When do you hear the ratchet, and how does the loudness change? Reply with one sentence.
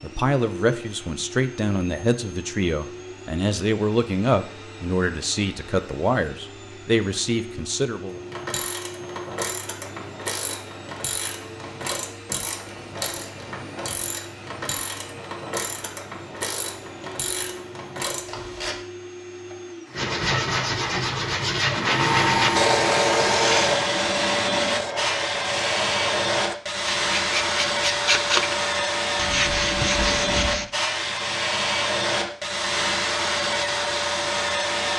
The ratchet can be heard from 8.1 to 18.8 s, at a steady volume.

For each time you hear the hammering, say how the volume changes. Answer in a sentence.
The hammering can't be heard in this clip.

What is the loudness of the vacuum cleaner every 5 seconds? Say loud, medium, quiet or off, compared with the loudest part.
quiet, quiet, quiet, quiet, loud, loud, loud.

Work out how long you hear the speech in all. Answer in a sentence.
You can hear the speech for 8 seconds altogether.